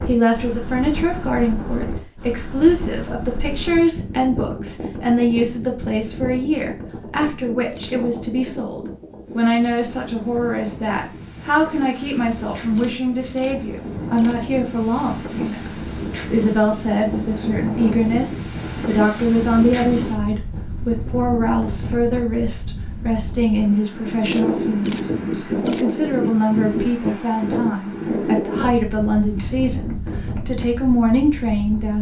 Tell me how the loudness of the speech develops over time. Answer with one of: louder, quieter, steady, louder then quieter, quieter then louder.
steady.